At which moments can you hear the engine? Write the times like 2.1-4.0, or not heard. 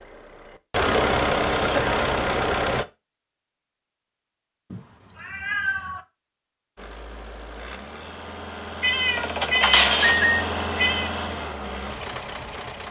0.0-2.9, 6.8-12.8.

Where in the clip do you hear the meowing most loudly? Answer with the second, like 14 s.
10 s.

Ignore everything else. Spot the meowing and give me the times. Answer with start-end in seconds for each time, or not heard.
1.6-2.0, 4.7-6.0, 8.8-11.1.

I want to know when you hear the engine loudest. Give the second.
1 s.